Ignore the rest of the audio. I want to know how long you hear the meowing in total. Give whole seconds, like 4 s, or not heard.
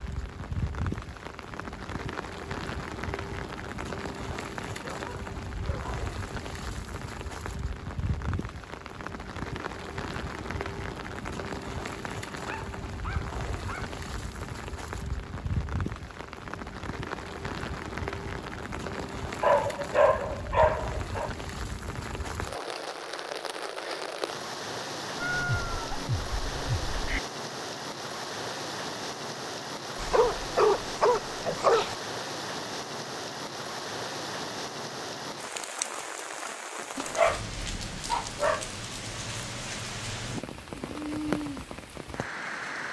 2 s.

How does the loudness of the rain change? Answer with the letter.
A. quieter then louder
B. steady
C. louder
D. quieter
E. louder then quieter
B.